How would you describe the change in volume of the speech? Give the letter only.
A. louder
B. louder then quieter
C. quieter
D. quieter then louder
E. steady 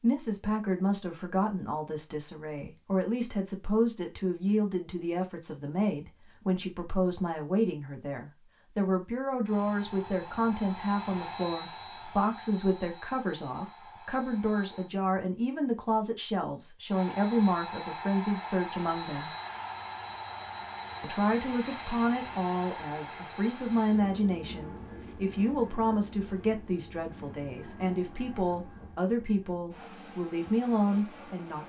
E.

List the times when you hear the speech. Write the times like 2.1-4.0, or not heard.
0.0-19.3, 21.0-31.6.